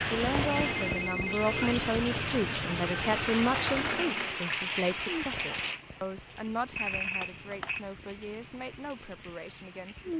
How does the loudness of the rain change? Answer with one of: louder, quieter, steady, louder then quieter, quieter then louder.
quieter.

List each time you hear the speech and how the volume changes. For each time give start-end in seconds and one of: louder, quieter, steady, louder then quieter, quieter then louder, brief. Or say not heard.
0.1-10.1 quieter.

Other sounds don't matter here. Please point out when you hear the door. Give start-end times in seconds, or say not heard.
3.0-4.5.